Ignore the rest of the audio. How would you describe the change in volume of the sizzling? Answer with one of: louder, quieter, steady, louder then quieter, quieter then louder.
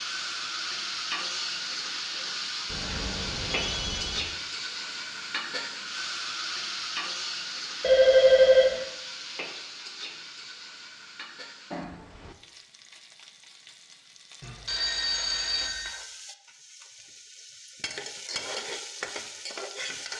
quieter then louder.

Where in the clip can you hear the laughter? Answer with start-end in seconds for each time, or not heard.
not heard.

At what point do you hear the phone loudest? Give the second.
8 s.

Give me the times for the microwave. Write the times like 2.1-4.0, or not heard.
not heard.